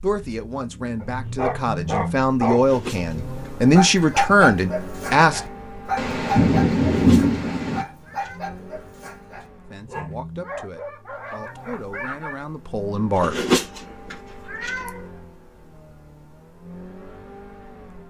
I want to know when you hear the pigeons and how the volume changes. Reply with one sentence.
The pigeons can't be heard in this clip.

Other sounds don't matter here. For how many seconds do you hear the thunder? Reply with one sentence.
The thunder can be heard for 2 seconds in total.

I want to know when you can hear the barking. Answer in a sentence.
The barking can be heard from 1.0 to 12.4 s.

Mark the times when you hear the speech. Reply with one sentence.
The speech can be heard from 0.0 to 5.4 s and from 9.7 to 13.3 s.